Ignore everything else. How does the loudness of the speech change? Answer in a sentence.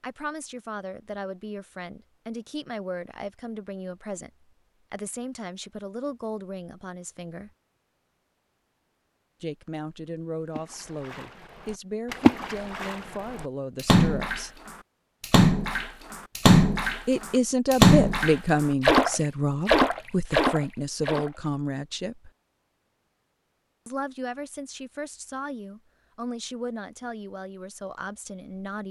The loudness of the speech goes up, then down.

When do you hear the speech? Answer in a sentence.
The speech can be heard from 0.0 to 7.5 s, from 9.4 to 14.6 s, from 17.1 to 22.3 s and from 23.9 to 28.8 s.